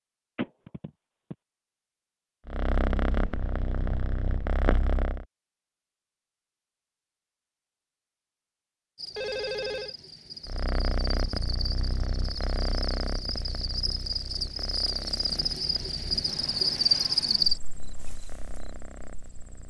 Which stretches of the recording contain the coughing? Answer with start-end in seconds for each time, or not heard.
not heard.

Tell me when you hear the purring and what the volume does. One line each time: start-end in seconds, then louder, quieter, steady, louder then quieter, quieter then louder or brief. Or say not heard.
2.5-5.2 brief
10.4-19.6 quieter.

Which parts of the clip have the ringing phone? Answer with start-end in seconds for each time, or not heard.
0.3-1.4, 9.2-9.9, 16.2-17.6.